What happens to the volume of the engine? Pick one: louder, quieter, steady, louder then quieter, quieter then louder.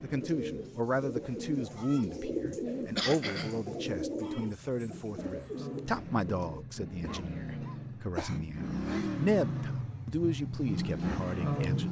louder.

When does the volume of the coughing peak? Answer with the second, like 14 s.
3 s.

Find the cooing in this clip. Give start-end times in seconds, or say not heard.
0.1-6.7.